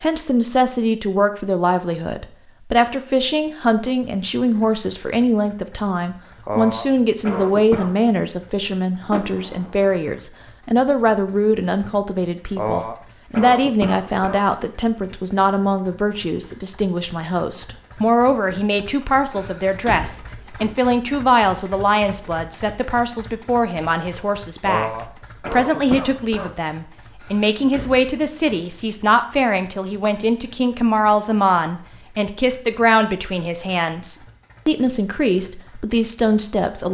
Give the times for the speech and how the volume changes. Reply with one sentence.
You can hear the speech from 0.0 to 24.9 s, at a steady volume; and from 25.5 to 36.8 s, at a steady volume.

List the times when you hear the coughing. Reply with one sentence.
You can hear the coughing from 6.5 to 7.9 s, from 12.6 to 14.4 s and from 24.6 to 26.5 s.